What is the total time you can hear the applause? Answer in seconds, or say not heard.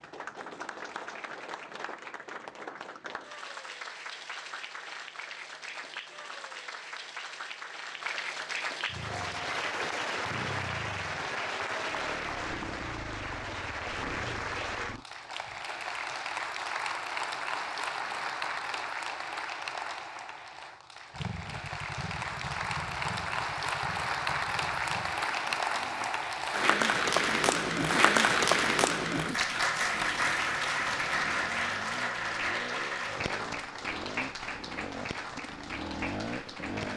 37 s.